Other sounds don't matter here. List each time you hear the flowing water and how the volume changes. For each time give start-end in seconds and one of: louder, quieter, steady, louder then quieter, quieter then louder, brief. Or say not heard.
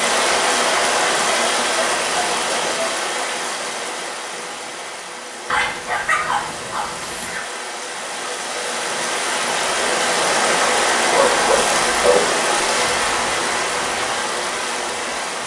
0.0-15.4 quieter then louder.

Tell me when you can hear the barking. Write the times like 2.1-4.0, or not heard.
0.7-3.0, 5.5-7.4, 11.1-12.2.